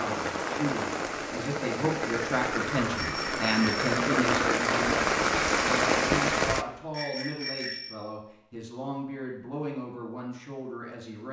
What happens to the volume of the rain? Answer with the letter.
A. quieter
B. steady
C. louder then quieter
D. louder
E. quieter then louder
D.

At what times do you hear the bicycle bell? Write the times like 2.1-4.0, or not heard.
3.0-3.9, 6.9-8.0.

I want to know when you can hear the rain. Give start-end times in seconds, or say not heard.
0.0-6.7.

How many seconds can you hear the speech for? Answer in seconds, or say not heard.
11 s.